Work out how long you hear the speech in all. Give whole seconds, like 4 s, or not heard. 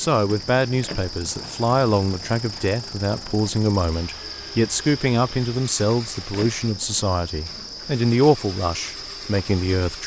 10 s.